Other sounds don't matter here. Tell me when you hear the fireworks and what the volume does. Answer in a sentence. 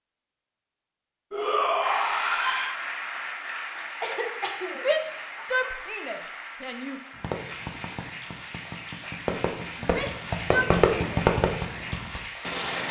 You can hear the fireworks from 7.2 to 12.8 s, getting louder then quieter.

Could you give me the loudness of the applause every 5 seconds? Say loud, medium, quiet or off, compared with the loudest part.
loud, medium, loud.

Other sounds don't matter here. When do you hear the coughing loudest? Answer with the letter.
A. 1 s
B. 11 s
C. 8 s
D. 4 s
D.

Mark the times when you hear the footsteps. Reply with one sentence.
The footsteps can't be heard in this clip.